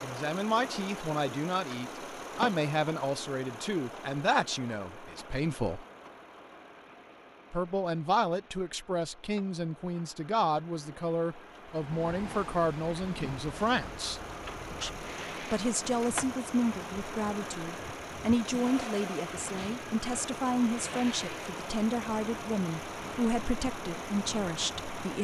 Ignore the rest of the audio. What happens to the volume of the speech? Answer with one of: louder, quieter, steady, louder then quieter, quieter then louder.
steady.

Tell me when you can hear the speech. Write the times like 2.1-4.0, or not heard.
0.0-5.8, 7.5-25.1.